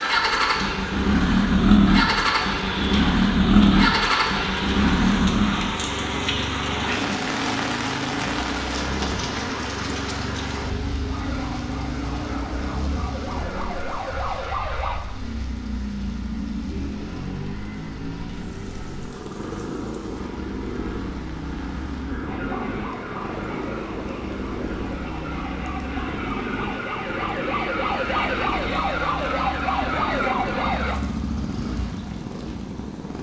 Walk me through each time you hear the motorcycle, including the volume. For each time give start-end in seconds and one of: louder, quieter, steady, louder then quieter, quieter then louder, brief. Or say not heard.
0.0-33.1 quieter.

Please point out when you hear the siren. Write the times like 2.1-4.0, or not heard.
11.1-15.0, 22.2-31.0.